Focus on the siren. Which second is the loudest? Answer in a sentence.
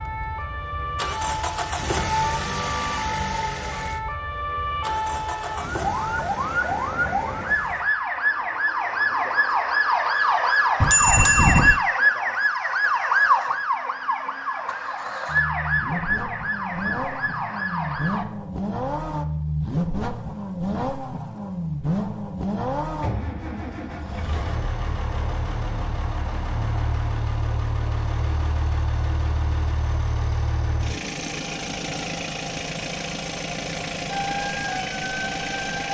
The volume of the siren peaks at 12 seconds.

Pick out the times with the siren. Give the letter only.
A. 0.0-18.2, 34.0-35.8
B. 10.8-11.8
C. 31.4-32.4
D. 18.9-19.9
A.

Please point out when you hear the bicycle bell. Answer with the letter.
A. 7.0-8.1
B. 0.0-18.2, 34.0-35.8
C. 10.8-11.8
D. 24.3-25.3
C.